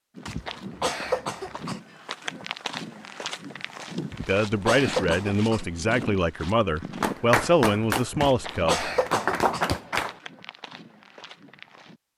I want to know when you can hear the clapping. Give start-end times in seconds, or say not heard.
7.0-10.2.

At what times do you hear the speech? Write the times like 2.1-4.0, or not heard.
4.2-8.9.